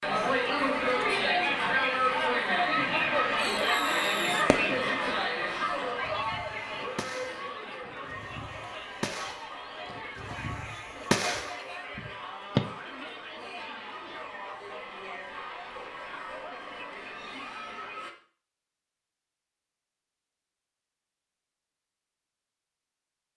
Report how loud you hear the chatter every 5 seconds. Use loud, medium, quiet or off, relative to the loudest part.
loud, medium, quiet, quiet, off.